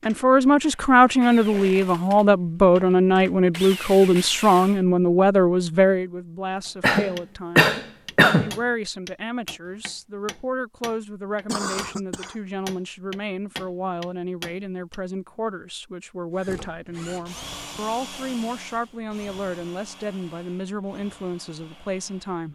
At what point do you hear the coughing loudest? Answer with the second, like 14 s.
8 s.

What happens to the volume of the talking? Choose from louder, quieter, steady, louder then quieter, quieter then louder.
quieter.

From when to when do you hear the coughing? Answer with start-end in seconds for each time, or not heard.
6.8-8.6, 11.4-12.3.